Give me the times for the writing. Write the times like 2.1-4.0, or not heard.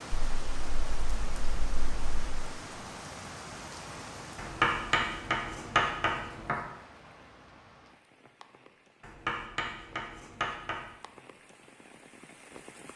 0.1-2.2, 4.6-6.5, 9.2-10.8.